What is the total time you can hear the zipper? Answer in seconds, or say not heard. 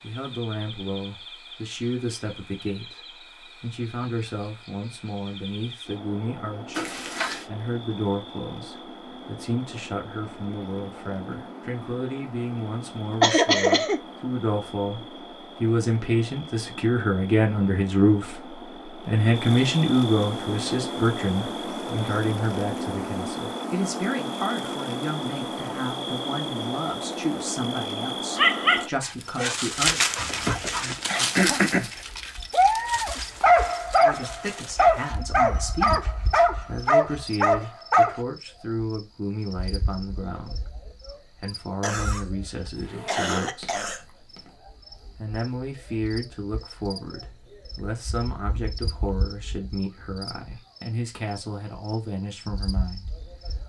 3 s.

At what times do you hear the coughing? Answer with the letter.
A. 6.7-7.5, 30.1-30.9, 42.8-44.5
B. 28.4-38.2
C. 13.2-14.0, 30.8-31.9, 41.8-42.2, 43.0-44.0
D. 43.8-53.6
C.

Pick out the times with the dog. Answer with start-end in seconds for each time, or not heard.
28.4-38.2.